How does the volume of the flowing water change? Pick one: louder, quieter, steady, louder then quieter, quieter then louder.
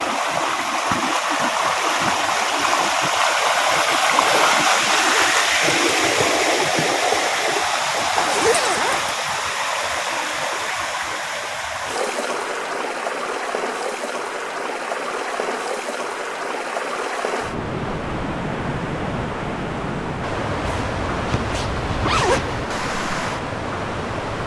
quieter.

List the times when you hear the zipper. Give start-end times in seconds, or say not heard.
4.0-5.3, 8.2-9.2, 20.6-22.6.